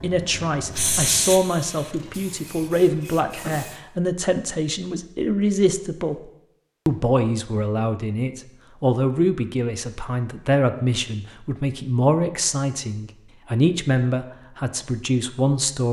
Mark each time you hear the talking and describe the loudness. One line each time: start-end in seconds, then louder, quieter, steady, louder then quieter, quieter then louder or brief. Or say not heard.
0.0-15.8 steady.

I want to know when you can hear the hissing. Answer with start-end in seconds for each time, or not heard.
0.0-3.9.